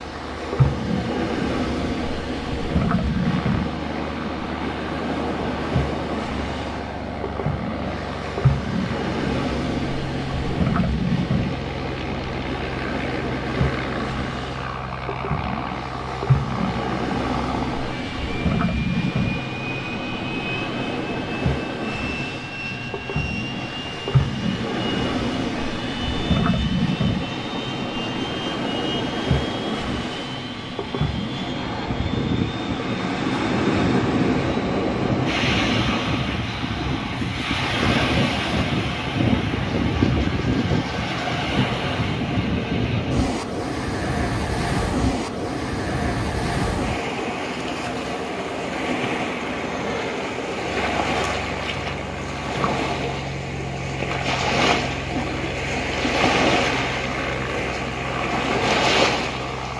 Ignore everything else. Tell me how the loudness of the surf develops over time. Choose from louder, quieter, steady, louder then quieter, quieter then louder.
steady.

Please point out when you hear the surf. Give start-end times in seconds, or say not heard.
0.0-59.7.